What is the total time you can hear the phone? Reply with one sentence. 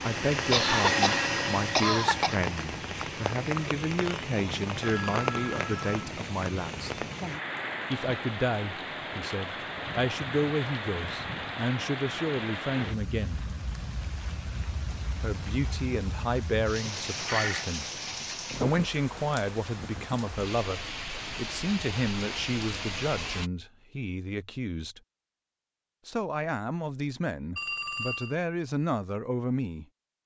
The phone can be heard for 3 seconds in total.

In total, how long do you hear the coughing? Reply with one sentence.
The coughing can be heard for 2 seconds in total.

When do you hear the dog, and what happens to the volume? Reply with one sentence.
The dog can't be heard in this clip.